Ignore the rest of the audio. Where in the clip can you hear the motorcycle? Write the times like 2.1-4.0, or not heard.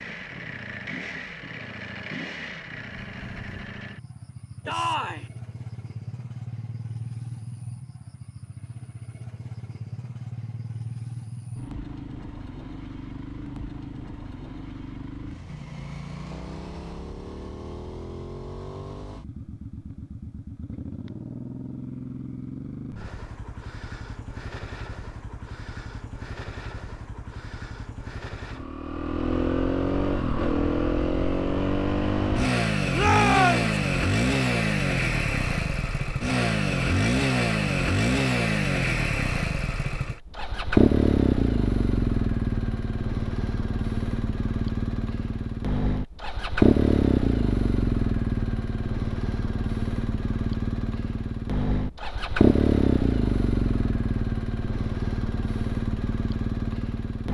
0.0-57.2.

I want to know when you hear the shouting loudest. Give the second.
33 s.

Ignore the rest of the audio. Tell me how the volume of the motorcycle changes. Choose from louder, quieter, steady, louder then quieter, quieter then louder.
louder.